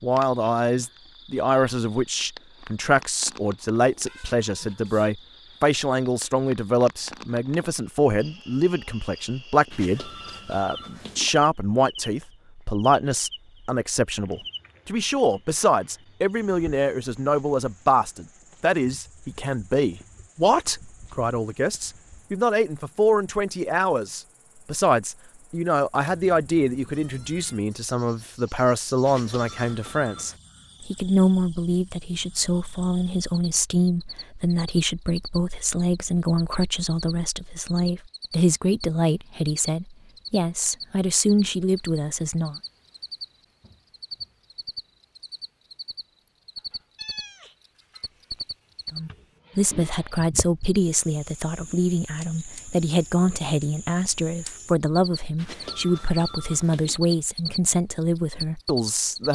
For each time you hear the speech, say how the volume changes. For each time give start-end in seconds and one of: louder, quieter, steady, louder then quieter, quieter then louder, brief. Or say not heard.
0.0-42.5 steady
48.9-59.2 steady.